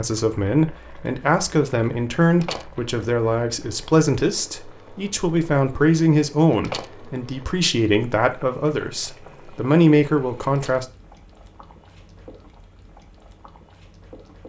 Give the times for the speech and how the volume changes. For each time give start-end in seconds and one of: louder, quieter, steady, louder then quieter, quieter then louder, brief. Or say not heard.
0.0-10.8 steady.